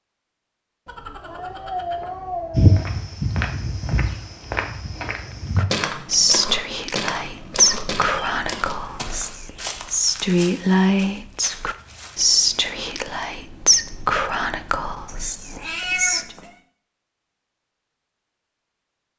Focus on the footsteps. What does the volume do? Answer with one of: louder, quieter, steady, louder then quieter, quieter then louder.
quieter.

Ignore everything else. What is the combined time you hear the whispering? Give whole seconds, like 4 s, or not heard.
11 s.